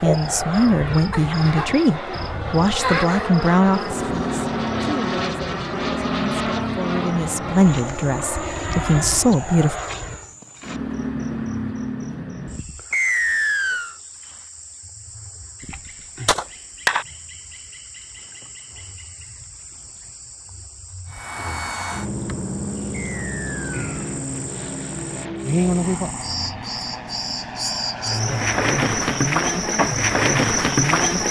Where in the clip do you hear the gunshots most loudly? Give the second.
17 s.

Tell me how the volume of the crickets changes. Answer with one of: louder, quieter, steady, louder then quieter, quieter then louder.
quieter then louder.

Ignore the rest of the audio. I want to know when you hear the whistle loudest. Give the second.
13 s.